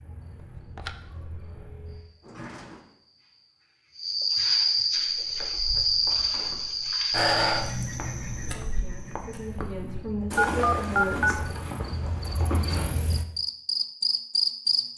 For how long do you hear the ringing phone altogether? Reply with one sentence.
The ringing phone can be heard for 3 seconds in total.